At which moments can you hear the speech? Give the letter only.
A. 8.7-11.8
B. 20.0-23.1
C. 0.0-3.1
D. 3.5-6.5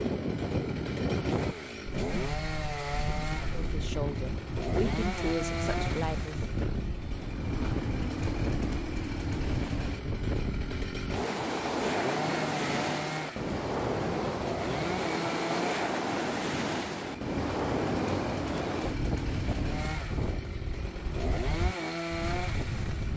D.